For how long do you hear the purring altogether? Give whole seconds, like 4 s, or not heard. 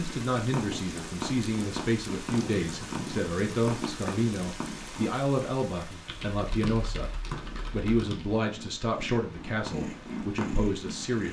9 s.